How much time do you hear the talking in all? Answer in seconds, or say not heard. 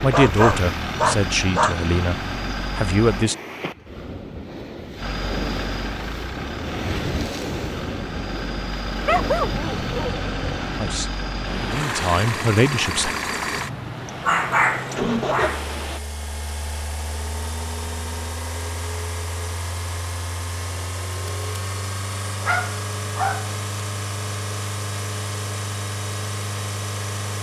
6 s.